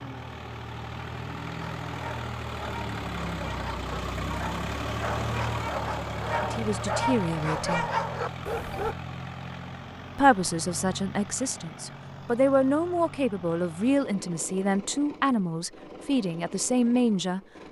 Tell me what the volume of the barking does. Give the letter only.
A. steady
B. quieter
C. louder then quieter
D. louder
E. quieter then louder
D.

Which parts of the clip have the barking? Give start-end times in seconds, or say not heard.
1.6-8.9.